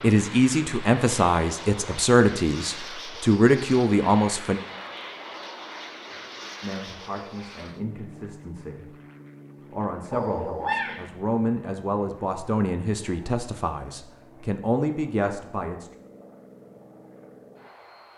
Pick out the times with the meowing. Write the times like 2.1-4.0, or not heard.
10.1-11.1.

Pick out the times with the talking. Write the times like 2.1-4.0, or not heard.
0.0-4.6, 6.6-8.9, 9.7-15.9.